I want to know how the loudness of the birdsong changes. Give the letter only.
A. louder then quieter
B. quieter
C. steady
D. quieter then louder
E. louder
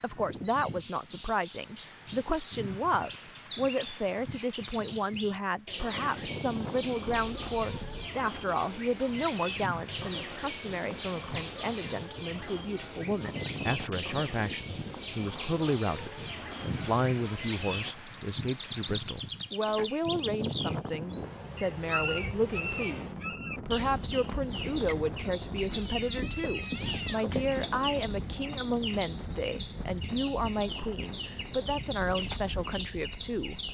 C.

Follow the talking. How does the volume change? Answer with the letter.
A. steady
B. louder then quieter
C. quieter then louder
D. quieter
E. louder
A.